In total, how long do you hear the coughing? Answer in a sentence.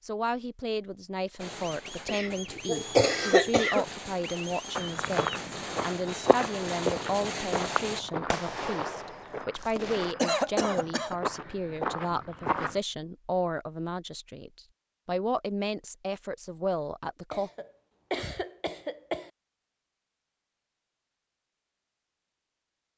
You can hear the coughing for 5 seconds altogether.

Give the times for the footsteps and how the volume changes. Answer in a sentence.
You can hear the footsteps from 4.8 to 12.8 s, getting quieter then louder.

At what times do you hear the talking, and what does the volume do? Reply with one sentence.
The talking can be heard from 0.0 to 17.5 s, at a steady volume.